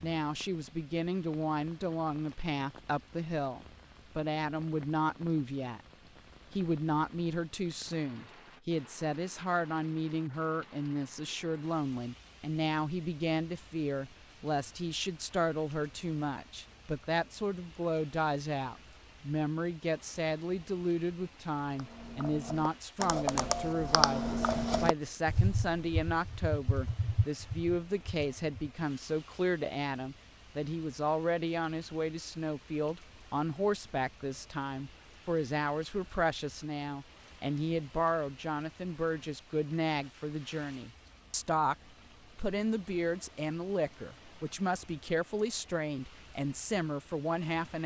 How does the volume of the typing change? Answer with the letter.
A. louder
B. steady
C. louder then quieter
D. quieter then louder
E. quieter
C.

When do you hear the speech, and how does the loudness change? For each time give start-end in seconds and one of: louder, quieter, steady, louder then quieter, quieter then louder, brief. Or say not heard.
0.0-5.8 steady
6.5-41.8 steady
42.4-47.8 steady.